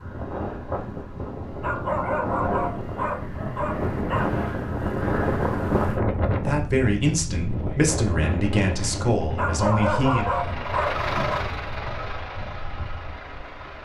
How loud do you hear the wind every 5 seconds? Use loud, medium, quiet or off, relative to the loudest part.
loud, loud, quiet.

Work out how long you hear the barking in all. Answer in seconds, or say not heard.
5 s.